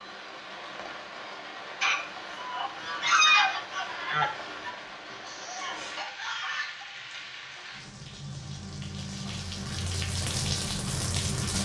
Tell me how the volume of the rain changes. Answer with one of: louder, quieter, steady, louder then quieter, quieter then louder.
louder.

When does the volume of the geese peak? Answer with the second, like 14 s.
3 s.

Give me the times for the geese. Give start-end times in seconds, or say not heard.
1.8-6.8.